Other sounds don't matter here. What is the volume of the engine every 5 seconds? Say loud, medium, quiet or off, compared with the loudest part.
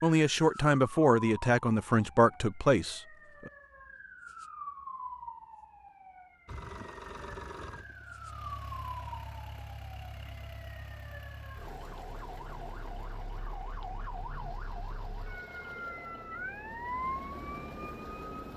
off, loud, loud, loud.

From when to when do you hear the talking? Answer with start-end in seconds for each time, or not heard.
0.0-3.5.